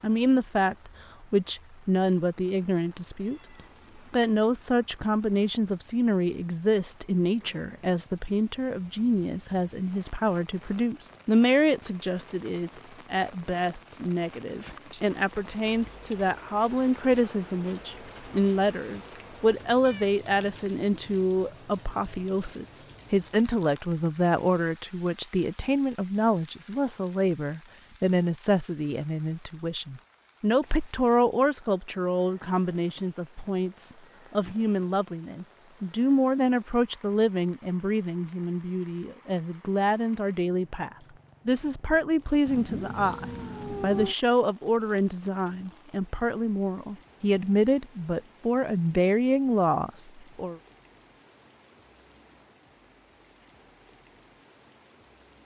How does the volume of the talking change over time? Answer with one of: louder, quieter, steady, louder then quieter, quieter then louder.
steady.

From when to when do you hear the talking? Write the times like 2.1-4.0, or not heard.
0.0-3.4, 4.1-50.6.